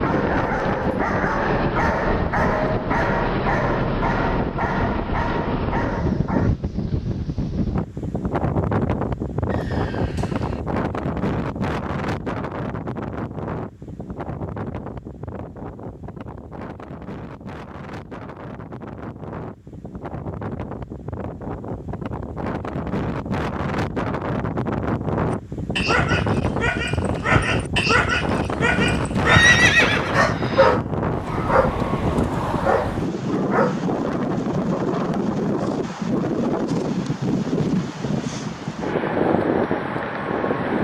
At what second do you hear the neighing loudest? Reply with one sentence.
The loudest moment of the neighing is at 30 seconds.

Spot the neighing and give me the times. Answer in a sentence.
You can hear the neighing from 9.4 to 10.7 s and from 29.2 to 30.8 s.